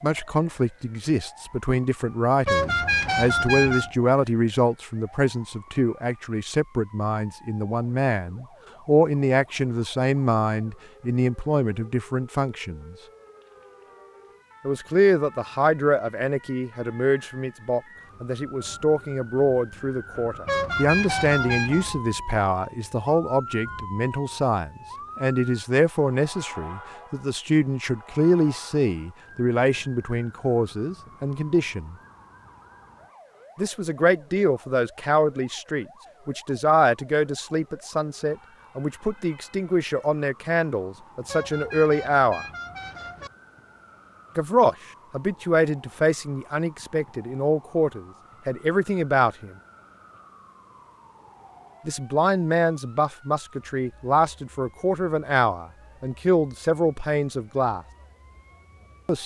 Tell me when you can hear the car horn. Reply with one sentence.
The car horn can be heard from 2.5 to 3.9 s, from 20.4 to 21.9 s and from 41.2 to 43.3 s.